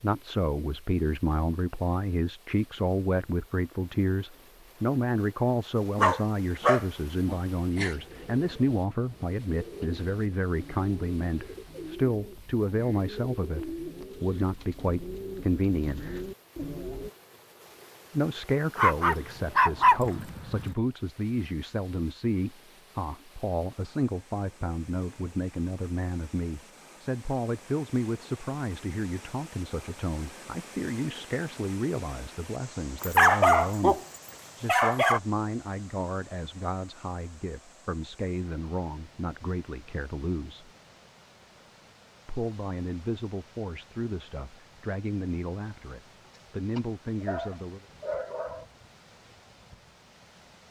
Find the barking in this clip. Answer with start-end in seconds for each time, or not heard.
6.0-8.0, 18.8-20.8, 33.0-35.2, 46.2-48.6.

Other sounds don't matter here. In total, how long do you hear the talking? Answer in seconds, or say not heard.
44 s.